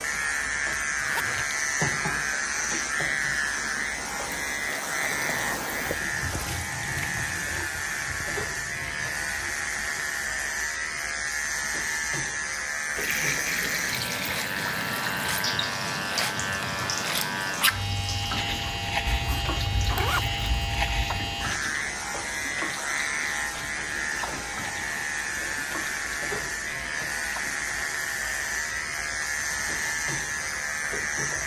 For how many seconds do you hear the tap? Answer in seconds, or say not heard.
29 s.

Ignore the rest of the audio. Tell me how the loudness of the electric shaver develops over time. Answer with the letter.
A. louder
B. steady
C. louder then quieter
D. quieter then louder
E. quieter
B.